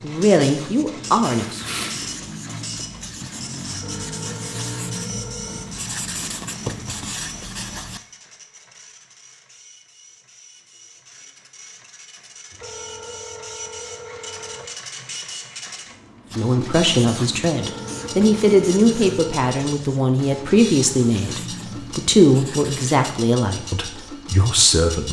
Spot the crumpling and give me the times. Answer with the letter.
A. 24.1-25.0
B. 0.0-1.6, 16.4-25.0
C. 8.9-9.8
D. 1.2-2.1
D.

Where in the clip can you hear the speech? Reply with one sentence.
You can hear the speech from 0.0 to 1.6 s and from 16.4 to 25.0 s.